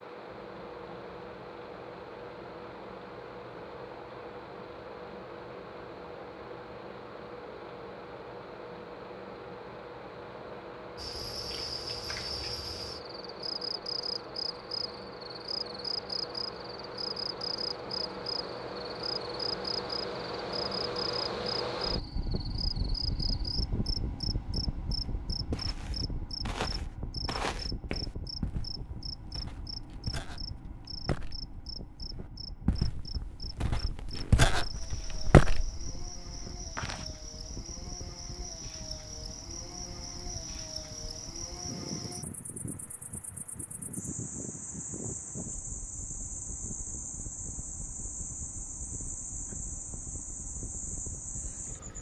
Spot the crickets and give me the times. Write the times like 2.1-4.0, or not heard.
10.9-51.9.